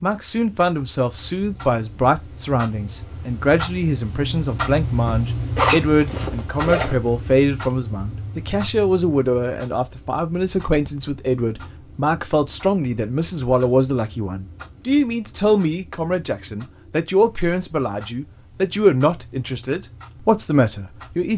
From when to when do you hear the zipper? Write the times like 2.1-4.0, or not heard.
5.5-7.0.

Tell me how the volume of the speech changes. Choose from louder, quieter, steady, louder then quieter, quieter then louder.
steady.